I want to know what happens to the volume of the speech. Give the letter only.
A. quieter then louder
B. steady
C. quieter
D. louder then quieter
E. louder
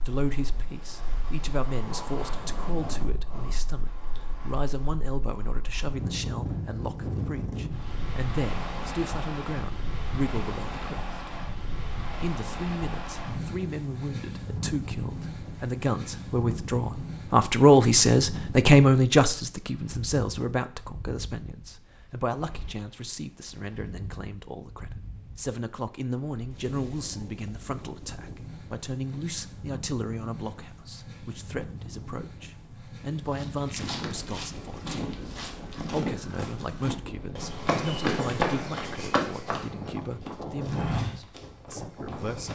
D.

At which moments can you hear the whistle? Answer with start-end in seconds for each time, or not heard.
not heard.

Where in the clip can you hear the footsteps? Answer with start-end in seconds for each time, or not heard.
33.3-42.5.